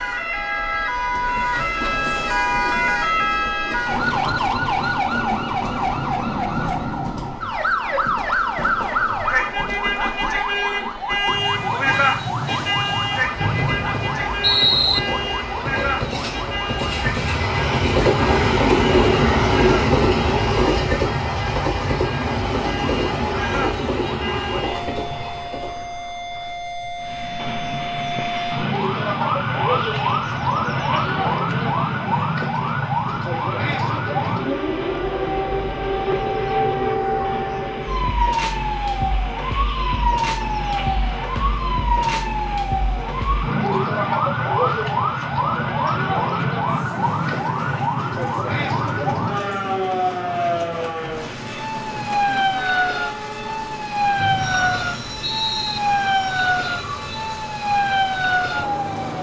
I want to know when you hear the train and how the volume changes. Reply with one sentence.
You can hear the train from 0.0 to 59.1 s, getting louder then quieter.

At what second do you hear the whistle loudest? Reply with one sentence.
The loudest moment of the whistle is at 15 seconds.